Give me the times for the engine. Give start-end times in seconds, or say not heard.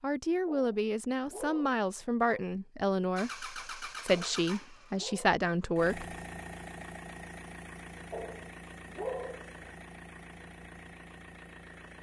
3.1-11.9.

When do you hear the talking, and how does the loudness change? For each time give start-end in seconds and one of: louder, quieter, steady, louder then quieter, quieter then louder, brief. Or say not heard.
0.0-6.2 steady.